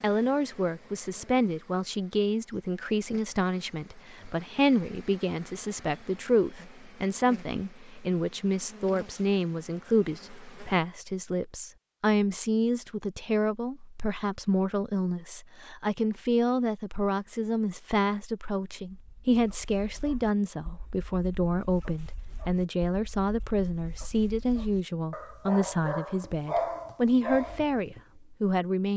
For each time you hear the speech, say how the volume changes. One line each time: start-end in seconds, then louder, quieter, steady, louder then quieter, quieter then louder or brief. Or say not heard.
0.0-28.9 steady.